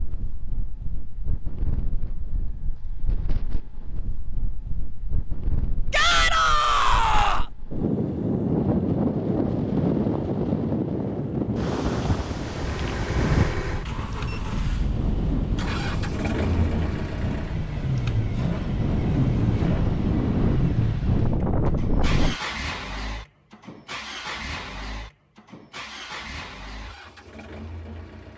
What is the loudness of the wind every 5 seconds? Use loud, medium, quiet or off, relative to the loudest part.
quiet, loud, loud, loud, loud, off.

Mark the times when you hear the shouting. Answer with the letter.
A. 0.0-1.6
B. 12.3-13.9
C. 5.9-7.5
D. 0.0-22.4
C.